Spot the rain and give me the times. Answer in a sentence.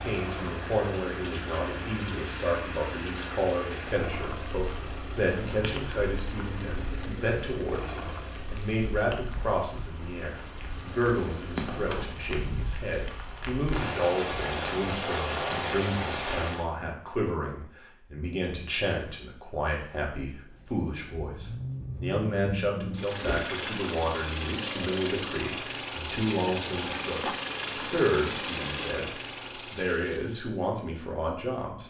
You can hear the rain from 0.0 to 16.6 s.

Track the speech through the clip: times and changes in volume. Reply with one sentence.
The speech can be heard from 0.0 to 31.8 s, at a steady volume.